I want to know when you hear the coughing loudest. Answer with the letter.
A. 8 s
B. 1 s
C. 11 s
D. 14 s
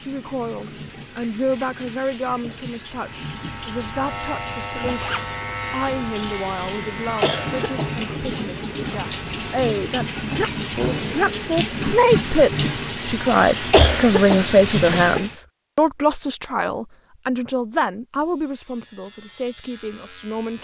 D.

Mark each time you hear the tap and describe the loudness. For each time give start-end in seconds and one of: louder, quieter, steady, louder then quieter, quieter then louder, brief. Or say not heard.
0.0-15.3 louder.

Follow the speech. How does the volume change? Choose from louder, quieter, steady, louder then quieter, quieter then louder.
louder then quieter.